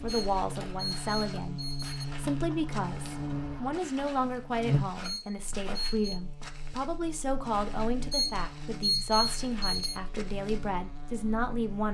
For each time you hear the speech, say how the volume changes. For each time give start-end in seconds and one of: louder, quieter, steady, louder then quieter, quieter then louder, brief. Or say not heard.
0.0-11.9 steady.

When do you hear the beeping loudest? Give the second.
9 s.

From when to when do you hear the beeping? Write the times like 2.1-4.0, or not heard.
0.1-2.0, 5.0-6.2, 8.1-10.0.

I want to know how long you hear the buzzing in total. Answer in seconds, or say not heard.
12 s.